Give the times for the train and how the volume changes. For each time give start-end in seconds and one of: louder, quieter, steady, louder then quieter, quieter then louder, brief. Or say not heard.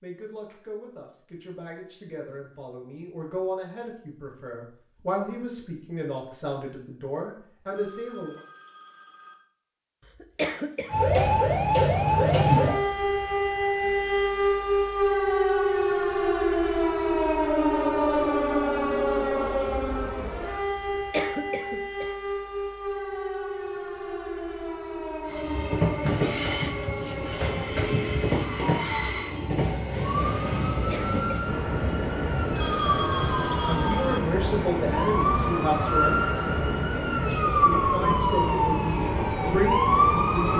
25.2-40.5 steady.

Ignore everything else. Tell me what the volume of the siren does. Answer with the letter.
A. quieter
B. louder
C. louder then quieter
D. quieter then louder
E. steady
D.